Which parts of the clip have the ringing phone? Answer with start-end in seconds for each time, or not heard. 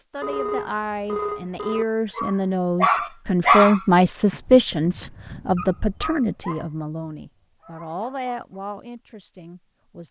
0.2-1.9.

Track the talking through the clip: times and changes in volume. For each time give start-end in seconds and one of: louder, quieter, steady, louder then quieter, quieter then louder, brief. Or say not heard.
0.0-10.0 louder then quieter.